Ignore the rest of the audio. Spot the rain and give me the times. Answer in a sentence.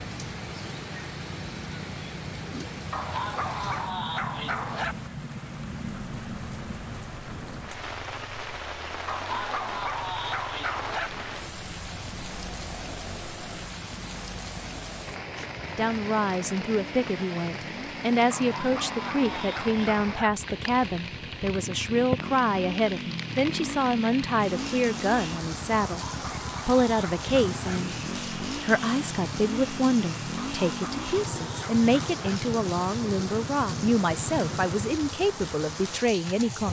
You can hear the rain from 0.0 to 36.6 s.